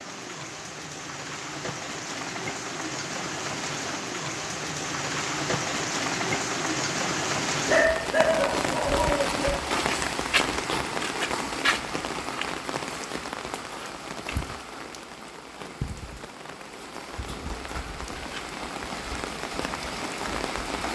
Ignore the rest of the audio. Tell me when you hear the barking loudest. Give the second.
8 s.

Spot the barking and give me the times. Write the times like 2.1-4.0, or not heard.
7.7-9.5.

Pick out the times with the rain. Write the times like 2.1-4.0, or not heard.
0.0-20.9.